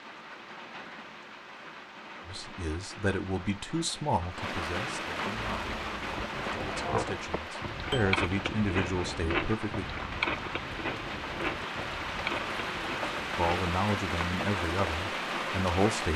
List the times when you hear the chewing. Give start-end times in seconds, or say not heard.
5.5-13.6.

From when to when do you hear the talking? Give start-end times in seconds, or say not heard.
2.2-9.8, 13.3-16.1.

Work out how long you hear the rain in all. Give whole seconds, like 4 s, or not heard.
16 s.